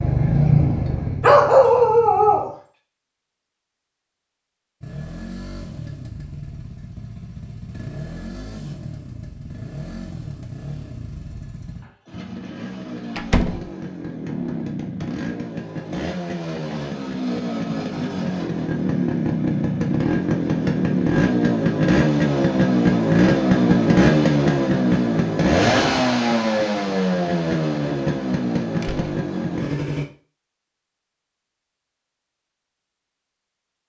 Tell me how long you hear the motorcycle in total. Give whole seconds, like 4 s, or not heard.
28 s.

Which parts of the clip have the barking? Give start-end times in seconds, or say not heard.
1.2-2.5.